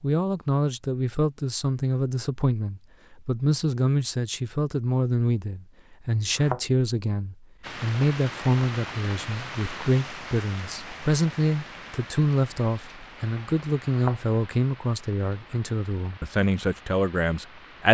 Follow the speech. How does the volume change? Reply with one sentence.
The loudness of the speech stays about the same.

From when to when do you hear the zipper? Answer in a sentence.
You can't hear the zipper here.